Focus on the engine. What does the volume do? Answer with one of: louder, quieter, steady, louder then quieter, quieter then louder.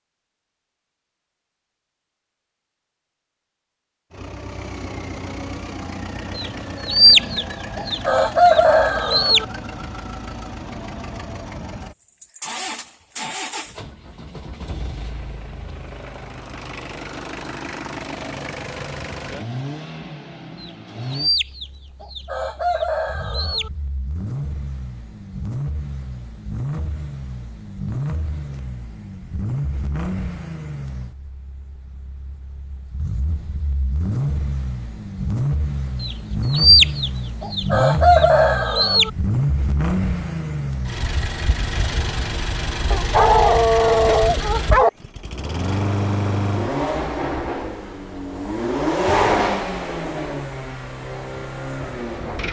louder.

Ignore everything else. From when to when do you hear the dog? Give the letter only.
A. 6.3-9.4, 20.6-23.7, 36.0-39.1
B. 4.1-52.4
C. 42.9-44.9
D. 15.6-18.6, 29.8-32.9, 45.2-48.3
C.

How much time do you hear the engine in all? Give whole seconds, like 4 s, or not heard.
48 s.